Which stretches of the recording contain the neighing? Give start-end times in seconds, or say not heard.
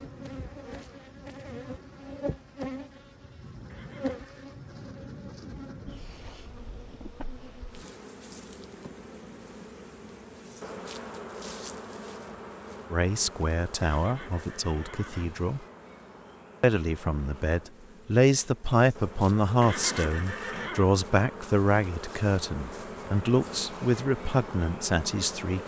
3.6-4.5, 13.8-15.4, 19.6-20.9.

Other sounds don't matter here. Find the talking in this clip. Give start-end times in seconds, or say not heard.
12.9-15.6, 16.6-25.6.